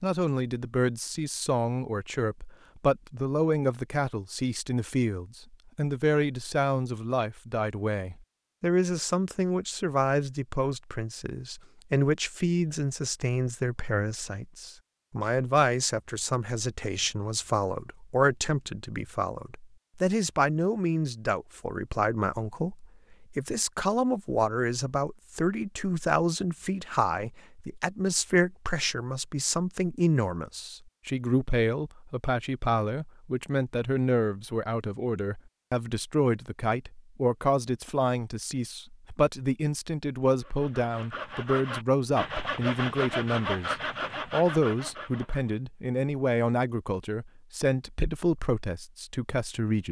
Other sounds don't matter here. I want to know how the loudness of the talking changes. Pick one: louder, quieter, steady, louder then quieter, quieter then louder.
steady.